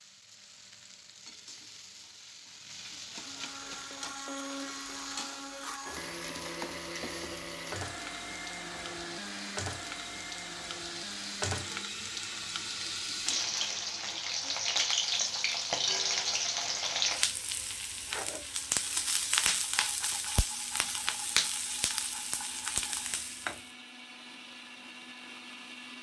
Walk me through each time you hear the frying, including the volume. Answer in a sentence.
You can hear the frying from 0.0 to 23.7 s, getting louder.